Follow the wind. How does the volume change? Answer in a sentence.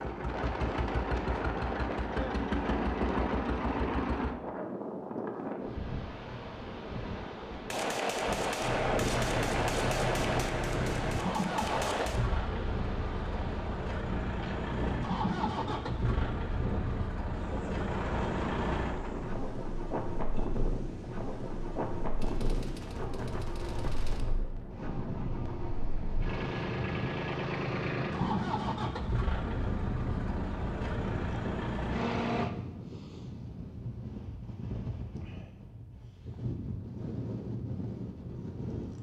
The loudness of the wind stays about the same.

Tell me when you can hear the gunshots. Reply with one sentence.
You can hear the gunshots from 7.7 to 12.2 s and from 22.2 to 24.2 s.